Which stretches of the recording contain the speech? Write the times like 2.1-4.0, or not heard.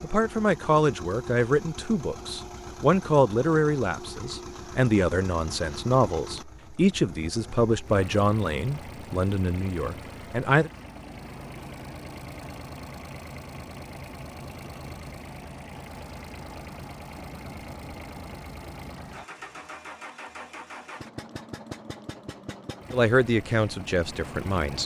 0.0-10.7, 22.9-24.8.